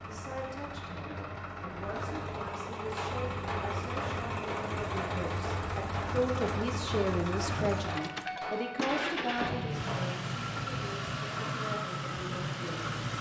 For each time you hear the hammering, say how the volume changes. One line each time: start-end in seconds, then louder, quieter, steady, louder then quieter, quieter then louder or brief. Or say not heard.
3.0-10.2 steady.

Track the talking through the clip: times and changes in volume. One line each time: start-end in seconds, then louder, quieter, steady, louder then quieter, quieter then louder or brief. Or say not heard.
0.1-13.1 louder then quieter.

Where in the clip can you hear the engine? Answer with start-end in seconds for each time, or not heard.
0.0-13.1.